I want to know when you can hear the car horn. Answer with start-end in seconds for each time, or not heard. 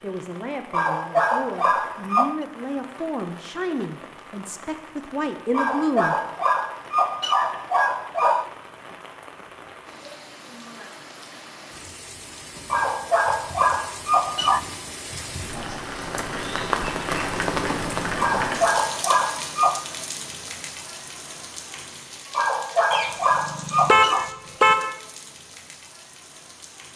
22.9-24.9.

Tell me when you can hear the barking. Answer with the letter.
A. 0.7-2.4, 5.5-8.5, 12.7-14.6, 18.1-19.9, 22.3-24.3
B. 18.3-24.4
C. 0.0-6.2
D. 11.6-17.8
A.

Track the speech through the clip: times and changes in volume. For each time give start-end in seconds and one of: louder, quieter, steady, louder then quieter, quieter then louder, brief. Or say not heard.
0.0-6.2 louder.